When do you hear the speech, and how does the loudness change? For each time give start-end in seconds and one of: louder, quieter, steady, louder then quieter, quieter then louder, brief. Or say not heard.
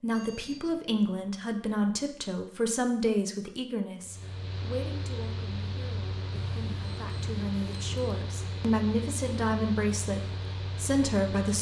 0.0-11.5 quieter then louder.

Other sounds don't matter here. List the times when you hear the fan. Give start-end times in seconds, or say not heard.
4.0-11.5.